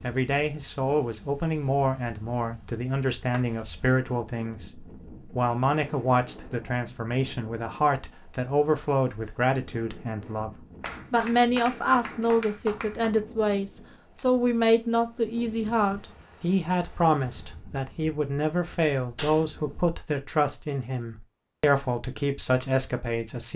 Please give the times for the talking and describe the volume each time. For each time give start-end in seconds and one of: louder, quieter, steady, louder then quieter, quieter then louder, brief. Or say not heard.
0.0-23.5 steady.